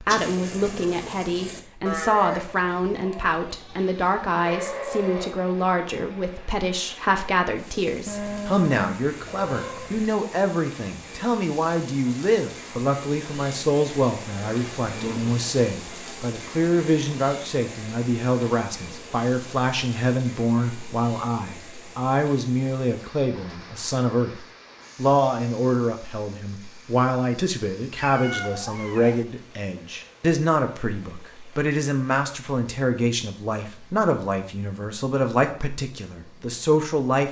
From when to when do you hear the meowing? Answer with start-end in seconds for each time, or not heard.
8.1-10.1, 14.8-15.3, 27.9-29.2.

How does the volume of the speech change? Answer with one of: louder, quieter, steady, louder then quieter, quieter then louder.
steady.